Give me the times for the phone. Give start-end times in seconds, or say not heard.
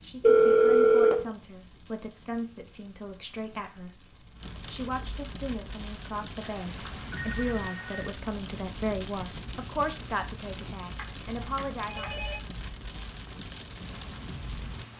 0.2-1.1, 6.4-8.1, 10.9-12.4.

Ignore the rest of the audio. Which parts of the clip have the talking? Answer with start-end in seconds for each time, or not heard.
0.0-12.2.